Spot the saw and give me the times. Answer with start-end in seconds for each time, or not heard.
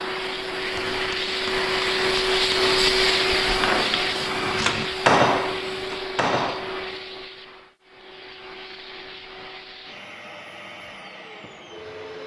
not heard.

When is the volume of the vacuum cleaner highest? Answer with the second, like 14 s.
3 s.